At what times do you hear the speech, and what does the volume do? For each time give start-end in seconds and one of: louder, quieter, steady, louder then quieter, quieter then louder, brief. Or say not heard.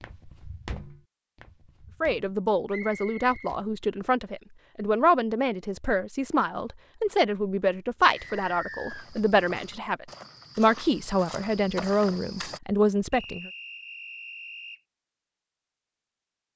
2.0-13.5 steady.